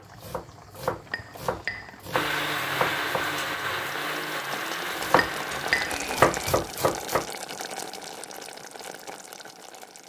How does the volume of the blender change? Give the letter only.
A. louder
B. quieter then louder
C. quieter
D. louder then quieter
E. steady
C.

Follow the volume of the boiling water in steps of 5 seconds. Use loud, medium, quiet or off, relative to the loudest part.
medium, loud.